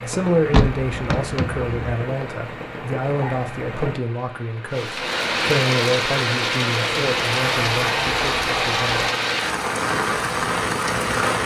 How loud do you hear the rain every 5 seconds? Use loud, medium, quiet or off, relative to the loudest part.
medium, loud, loud.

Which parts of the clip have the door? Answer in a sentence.
The door can be heard from 0.5 to 1.8 s and from 7.0 to 9.2 s.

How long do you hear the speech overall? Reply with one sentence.
You can hear the speech for 9 seconds altogether.